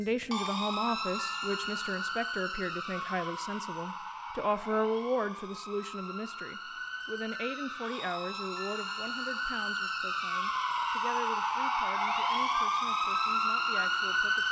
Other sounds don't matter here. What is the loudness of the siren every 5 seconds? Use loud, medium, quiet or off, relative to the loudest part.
medium, medium, loud.